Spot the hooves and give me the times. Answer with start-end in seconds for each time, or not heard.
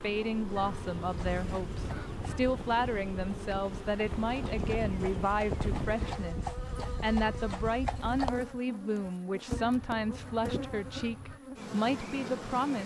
1.0-8.5.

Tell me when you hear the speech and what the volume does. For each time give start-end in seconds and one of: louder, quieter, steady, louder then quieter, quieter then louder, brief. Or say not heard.
0.0-12.8 steady.